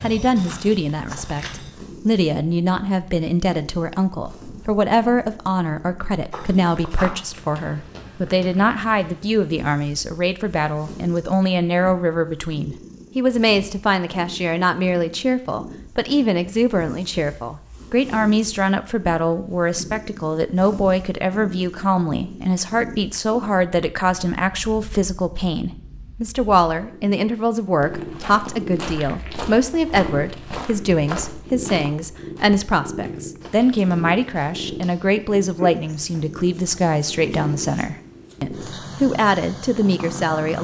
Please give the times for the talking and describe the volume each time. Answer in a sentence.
You can hear the talking from 0.0 to 40.5 s, at a steady volume.